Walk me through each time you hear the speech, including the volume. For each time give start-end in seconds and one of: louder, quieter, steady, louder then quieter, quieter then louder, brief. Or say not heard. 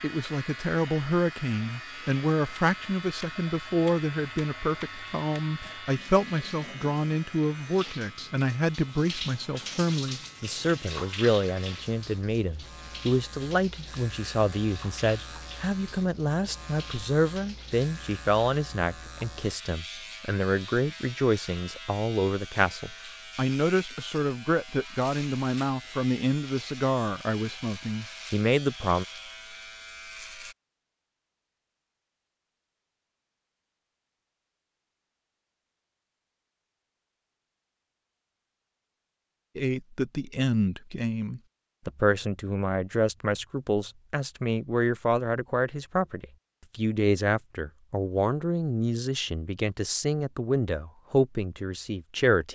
0.0-29.1 steady
39.5-52.5 steady.